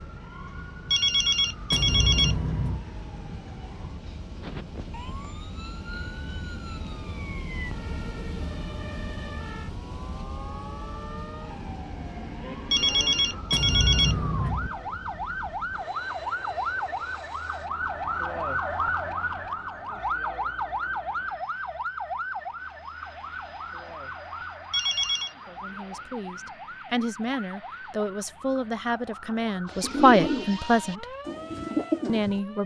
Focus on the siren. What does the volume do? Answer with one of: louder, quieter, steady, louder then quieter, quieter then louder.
louder then quieter.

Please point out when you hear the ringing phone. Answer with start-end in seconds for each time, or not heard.
0.9-2.9, 12.7-14.7, 24.7-25.3.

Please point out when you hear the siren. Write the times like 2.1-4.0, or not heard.
0.0-32.6.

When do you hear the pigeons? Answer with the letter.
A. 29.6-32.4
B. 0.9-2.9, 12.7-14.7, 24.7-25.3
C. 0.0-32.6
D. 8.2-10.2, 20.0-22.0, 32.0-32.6
A.